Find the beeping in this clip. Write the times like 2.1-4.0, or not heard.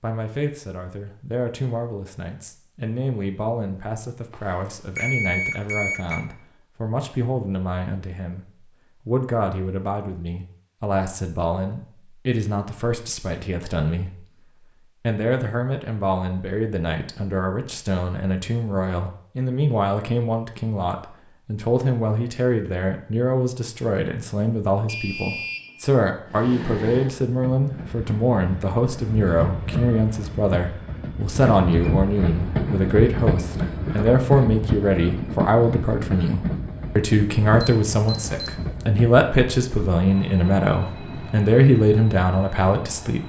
4.3-6.2, 24.9-25.9, 37.5-38.6.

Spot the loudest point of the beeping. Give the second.
5 s.